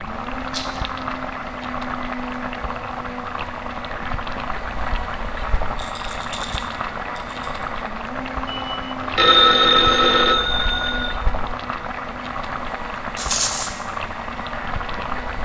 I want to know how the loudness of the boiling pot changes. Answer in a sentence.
The volume of the boiling pot stays about the same.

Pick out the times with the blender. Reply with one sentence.
You can hear the blender from 0.0 to 15.3 s.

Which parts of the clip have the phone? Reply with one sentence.
You can hear the phone from 8.4 to 11.2 s.